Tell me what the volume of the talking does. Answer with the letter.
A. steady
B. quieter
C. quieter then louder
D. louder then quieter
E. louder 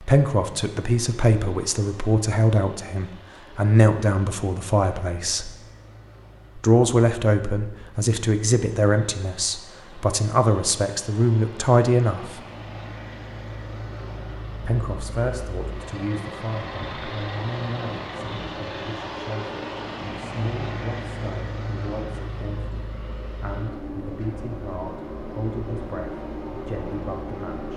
B.